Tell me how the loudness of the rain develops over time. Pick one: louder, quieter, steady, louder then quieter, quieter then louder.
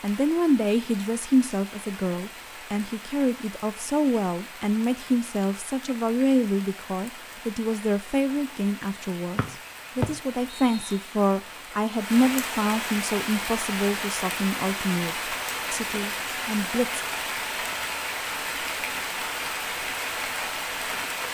louder.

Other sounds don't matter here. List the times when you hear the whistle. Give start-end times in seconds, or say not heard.
9.3-11.1.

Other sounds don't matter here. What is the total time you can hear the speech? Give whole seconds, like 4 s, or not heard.
17 s.